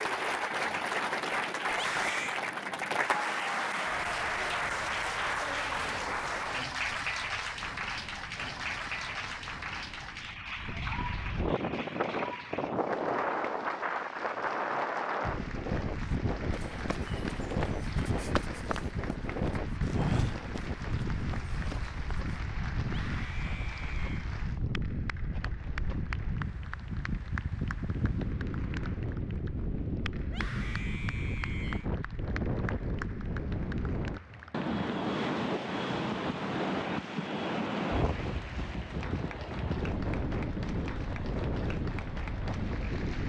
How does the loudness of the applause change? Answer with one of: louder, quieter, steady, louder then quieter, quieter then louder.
quieter.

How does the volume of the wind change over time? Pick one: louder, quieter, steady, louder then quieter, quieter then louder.
louder.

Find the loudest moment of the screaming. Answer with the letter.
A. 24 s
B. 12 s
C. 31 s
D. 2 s
D.